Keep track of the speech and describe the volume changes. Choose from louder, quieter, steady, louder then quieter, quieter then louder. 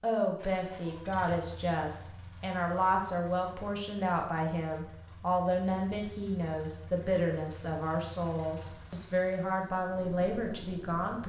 steady.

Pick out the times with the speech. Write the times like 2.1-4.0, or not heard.
0.0-11.2.